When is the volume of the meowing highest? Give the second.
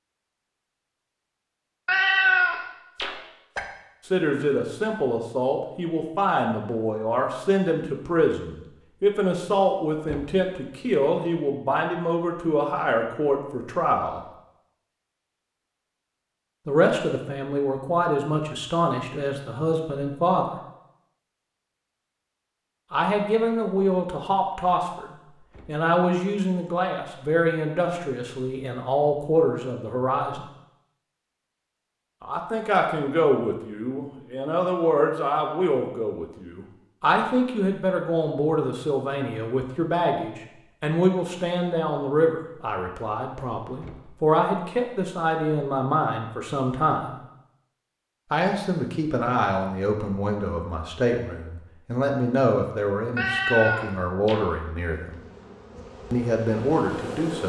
2 s.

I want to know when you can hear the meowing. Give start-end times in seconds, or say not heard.
1.9-3.6, 53.1-54.5.